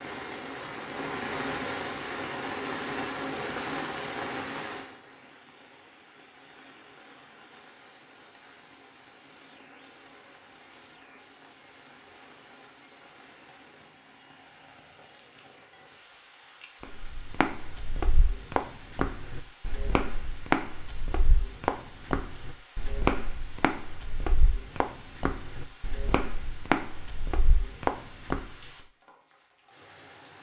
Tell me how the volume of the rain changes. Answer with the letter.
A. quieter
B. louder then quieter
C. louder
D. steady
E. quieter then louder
A.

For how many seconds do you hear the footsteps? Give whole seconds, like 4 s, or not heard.
12 s.